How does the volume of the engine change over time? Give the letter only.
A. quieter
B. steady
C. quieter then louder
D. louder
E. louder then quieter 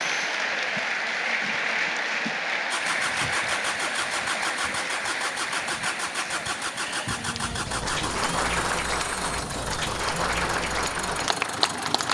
B.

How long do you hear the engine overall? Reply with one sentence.
The engine can be heard for 9 seconds in total.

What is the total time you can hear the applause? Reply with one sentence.
You can hear the applause for 12 seconds altogether.